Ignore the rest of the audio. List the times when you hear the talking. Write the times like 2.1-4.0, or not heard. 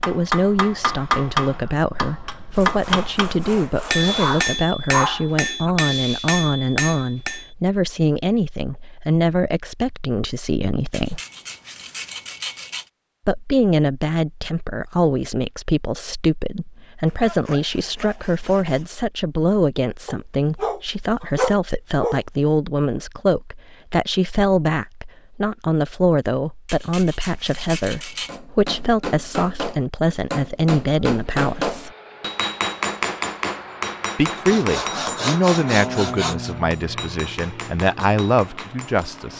0.1-11.2, 13.2-31.9, 34.1-39.3.